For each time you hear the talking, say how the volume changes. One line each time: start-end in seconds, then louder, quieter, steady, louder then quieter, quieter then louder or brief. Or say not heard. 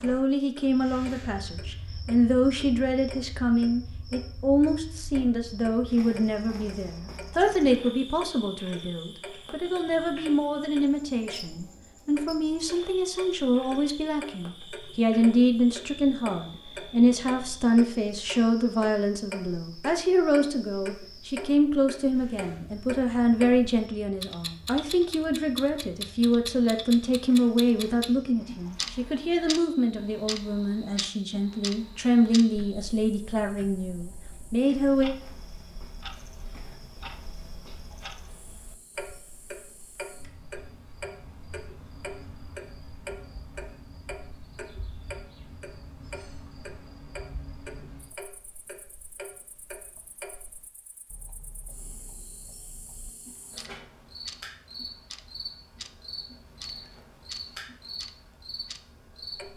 0.0-35.1 steady.